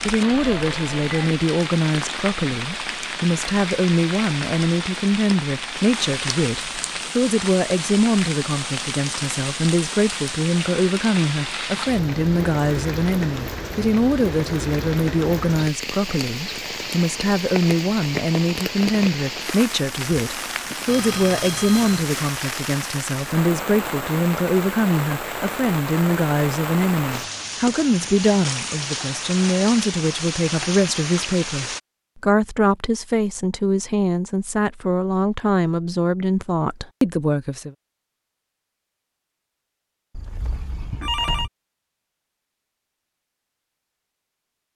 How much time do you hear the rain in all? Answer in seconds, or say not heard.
32 s.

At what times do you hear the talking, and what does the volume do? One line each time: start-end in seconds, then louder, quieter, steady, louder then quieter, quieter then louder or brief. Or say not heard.
0.0-37.8 steady.